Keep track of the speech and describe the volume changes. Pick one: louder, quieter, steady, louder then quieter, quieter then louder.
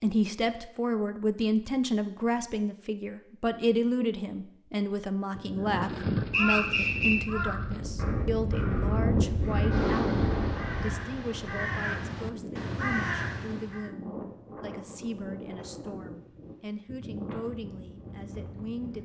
quieter.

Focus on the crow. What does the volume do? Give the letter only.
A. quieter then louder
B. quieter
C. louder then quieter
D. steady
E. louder
A.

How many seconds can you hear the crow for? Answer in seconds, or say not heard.
8 s.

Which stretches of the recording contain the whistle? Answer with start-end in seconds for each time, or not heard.
6.3-7.2.